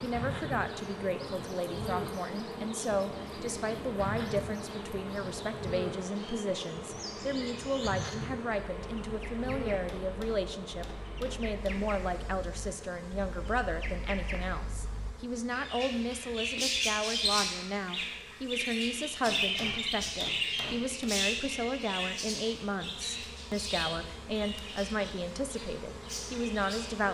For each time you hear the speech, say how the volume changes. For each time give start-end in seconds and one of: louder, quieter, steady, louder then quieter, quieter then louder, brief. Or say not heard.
0.0-27.1 steady.